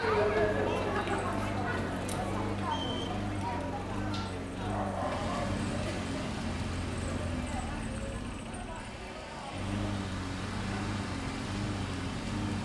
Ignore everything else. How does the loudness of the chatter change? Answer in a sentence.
The volume of the chatter goes down.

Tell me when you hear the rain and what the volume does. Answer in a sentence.
The rain can be heard from 4.9 to 12.6 s, getting quieter then louder.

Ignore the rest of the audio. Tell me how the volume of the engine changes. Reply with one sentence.
The volume of the engine stays about the same.